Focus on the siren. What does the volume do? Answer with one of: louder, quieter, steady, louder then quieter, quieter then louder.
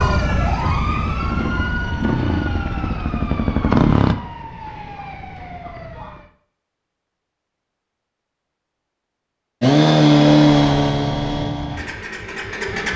quieter.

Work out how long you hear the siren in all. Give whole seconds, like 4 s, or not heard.
6 s.